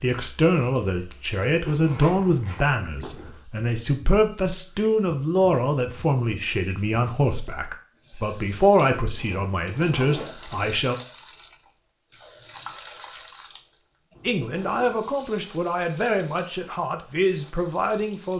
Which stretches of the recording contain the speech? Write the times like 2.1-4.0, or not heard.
0.0-10.9, 14.2-18.3.